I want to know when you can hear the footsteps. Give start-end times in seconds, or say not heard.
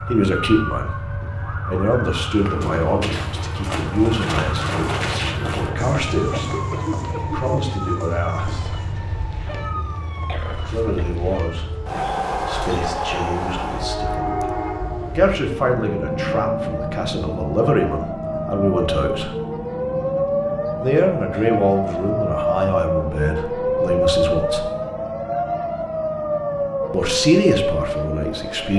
2.4-8.9.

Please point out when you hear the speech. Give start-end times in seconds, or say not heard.
0.1-8.8, 10.6-11.7, 12.4-14.5, 15.2-19.3, 20.8-24.7, 26.9-28.7.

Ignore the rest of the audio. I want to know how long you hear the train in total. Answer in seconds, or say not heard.
29 s.